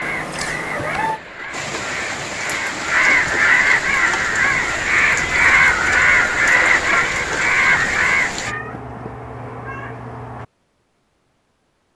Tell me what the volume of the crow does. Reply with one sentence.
The loudness of the crow goes up.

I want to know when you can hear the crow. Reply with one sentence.
The crow can be heard from 0.0 to 8.6 s.